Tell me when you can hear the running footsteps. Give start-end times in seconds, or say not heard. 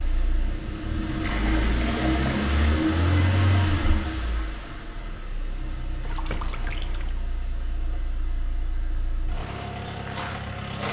not heard.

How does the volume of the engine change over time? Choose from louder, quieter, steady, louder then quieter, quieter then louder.
quieter then louder.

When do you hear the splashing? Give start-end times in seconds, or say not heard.
1.2-2.8, 6.0-7.2.